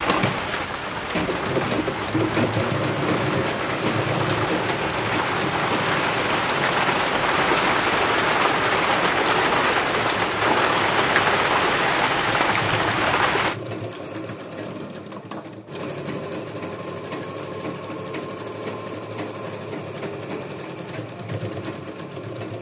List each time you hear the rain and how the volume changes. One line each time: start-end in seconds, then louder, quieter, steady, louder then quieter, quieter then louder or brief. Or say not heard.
0.0-13.6 louder.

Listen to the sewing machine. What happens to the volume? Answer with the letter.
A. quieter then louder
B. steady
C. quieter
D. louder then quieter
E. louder
C.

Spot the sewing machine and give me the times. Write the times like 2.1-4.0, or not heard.
0.0-22.5.